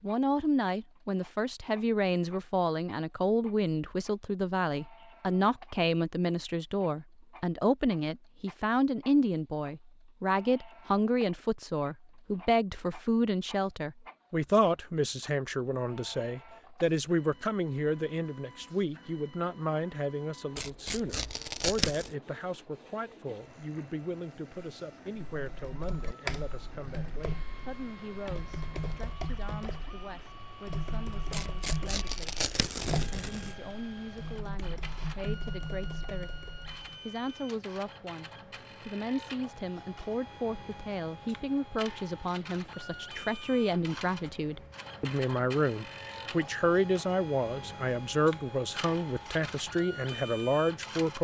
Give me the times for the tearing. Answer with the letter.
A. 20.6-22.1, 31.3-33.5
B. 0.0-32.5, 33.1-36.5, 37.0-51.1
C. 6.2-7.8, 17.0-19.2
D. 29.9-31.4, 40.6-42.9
A.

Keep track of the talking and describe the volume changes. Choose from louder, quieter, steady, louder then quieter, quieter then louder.
quieter then louder.